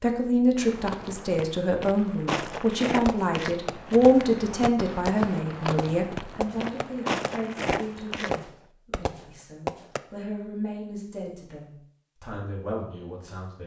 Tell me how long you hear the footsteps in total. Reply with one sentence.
The footsteps can be heard for 8 seconds in total.